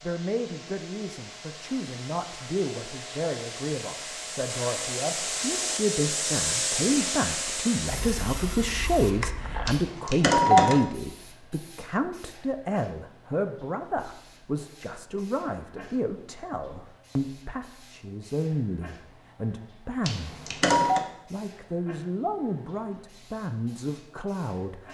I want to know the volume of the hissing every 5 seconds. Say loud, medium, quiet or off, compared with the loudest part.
medium, loud, quiet, quiet, quiet.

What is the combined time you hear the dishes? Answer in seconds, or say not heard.
not heard.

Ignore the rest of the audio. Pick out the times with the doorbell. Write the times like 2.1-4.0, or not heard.
9.7-10.8, 20.1-21.1.